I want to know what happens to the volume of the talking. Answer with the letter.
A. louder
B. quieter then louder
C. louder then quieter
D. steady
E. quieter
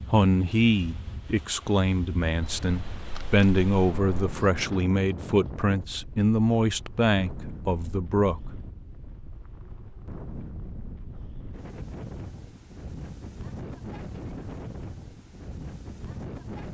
D.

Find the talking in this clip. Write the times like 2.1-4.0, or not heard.
0.1-8.5.